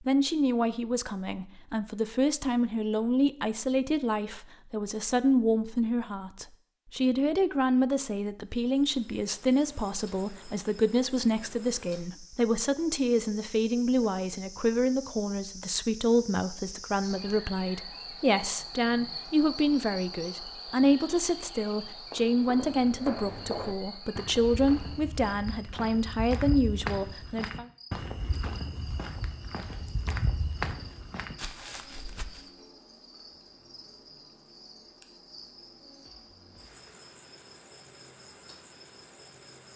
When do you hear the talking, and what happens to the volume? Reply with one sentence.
You can hear the talking from 0.0 to 27.6 s, at a steady volume.